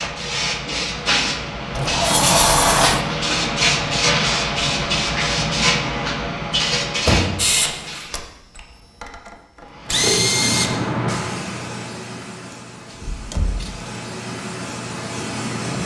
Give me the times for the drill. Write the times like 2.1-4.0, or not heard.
7.3-10.8.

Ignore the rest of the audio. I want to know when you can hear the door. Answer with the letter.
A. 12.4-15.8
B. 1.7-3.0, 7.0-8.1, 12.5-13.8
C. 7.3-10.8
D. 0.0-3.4
B.